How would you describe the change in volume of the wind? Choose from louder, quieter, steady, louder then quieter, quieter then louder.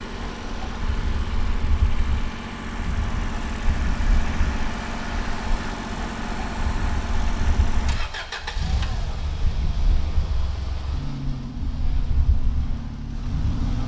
steady.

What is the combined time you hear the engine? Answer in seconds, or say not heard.
14 s.